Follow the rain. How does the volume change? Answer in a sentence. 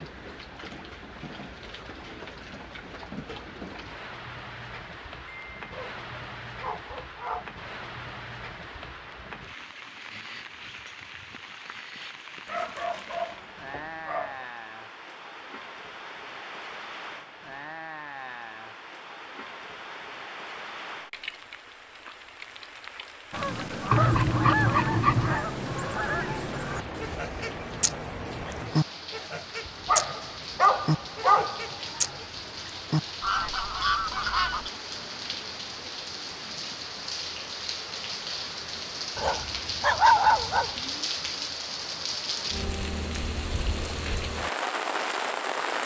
The volume of the rain goes up.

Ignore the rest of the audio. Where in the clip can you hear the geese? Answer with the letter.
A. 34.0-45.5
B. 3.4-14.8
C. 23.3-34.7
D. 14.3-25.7
C.